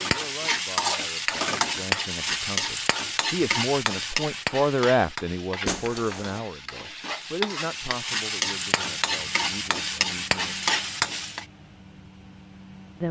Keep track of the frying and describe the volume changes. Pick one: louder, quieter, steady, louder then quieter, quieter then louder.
quieter then louder.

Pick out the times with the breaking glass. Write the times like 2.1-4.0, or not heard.
5.7-6.4.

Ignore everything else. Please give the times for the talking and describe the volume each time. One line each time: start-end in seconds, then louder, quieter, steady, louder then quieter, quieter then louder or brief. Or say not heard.
0.0-10.7 louder then quieter.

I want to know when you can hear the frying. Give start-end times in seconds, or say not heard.
0.0-11.4.